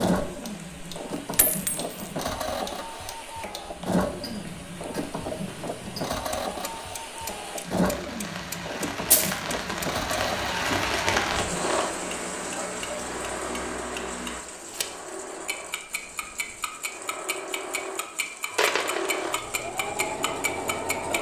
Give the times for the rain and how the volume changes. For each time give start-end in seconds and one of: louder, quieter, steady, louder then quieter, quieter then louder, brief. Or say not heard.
0.0-21.1 louder then quieter.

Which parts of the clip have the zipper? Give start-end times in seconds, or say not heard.
not heard.